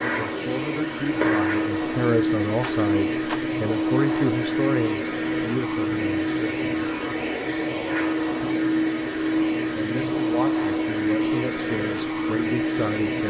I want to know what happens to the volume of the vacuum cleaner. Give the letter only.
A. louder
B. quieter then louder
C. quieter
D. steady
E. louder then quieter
D.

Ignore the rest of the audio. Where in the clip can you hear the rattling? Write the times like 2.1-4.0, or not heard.
2.6-3.5.